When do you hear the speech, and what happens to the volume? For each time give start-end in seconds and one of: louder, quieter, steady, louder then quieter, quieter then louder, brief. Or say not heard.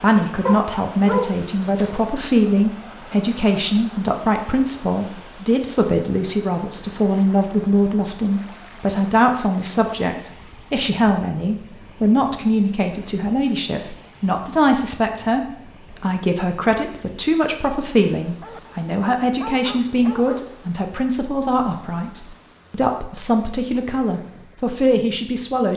0.0-25.7 steady.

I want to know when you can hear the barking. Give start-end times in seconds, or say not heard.
0.5-2.1, 18.4-20.6.